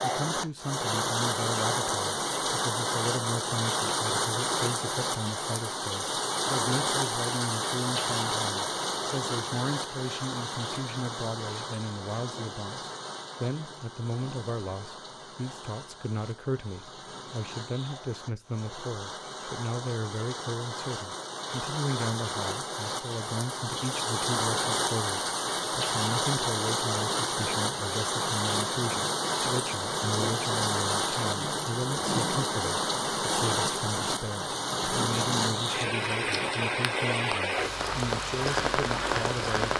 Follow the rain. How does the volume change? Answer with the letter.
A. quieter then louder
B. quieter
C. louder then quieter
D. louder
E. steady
A.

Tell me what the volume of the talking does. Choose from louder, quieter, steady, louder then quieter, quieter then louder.
steady.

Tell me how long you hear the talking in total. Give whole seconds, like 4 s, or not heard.
40 s.